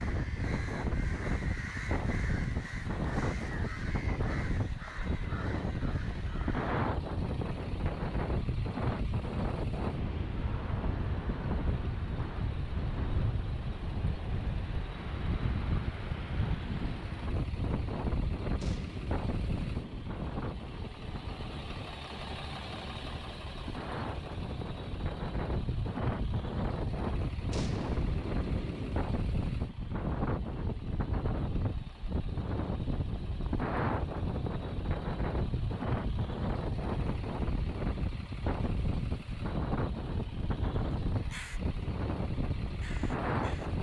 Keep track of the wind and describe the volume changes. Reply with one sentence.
The volume of the wind stays about the same.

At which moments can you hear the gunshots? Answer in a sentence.
The gunshots can be heard from 18.6 to 20.1 s and from 27.5 to 28.9 s.